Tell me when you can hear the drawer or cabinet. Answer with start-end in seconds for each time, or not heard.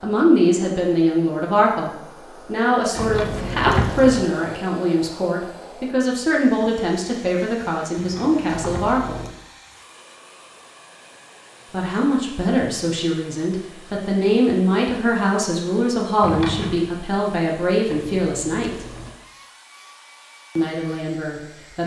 3.0-4.0, 8.0-8.9, 16.2-16.8.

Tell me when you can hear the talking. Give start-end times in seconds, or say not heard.
0.0-9.2, 11.7-18.9, 20.6-21.8.